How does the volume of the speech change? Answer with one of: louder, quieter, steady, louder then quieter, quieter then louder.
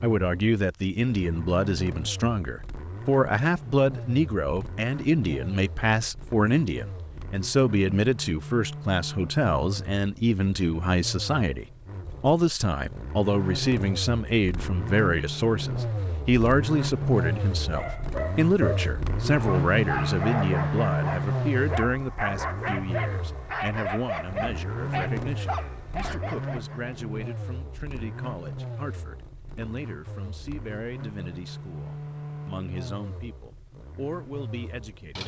quieter.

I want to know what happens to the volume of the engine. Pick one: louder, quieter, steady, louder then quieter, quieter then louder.
louder then quieter.